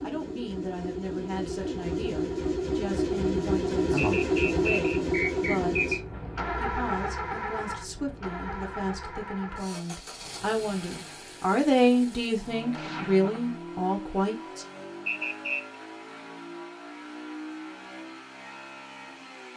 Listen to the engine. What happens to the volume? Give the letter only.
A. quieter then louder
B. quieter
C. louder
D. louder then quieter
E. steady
B.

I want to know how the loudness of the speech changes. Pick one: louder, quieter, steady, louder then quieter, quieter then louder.
louder.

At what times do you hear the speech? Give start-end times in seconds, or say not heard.
0.0-14.7.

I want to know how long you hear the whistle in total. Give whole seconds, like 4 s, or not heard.
3 s.